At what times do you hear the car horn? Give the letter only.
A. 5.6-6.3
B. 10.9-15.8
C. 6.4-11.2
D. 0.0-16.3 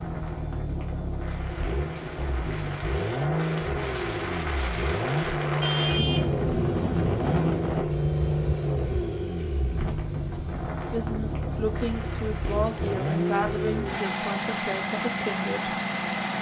A.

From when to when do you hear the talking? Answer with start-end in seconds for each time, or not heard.
10.9-15.8.